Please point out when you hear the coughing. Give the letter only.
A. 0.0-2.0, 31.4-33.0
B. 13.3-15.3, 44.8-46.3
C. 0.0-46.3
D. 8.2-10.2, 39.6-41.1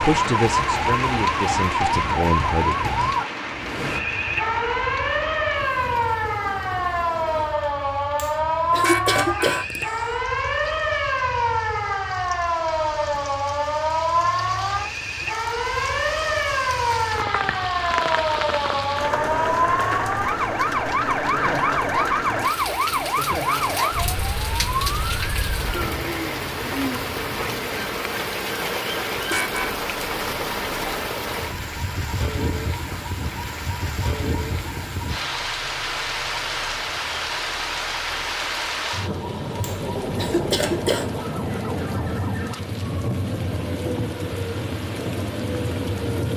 D.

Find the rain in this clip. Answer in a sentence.
You can hear the rain from 0.0 to 46.3 s.